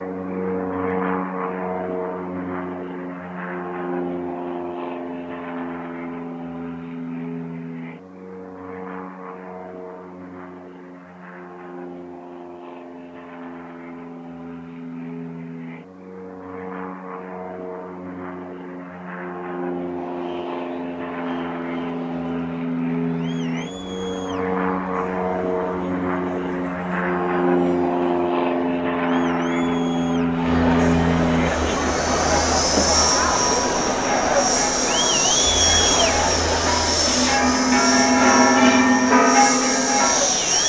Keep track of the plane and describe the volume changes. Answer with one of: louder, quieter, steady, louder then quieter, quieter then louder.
quieter then louder.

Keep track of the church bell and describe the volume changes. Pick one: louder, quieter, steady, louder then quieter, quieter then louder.
louder.